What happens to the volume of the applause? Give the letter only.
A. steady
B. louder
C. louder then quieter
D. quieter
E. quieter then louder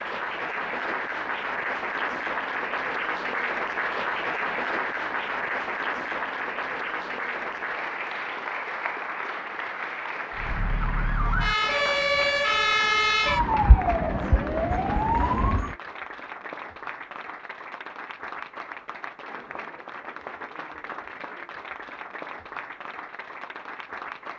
D.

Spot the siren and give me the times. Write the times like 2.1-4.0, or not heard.
10.3-15.8.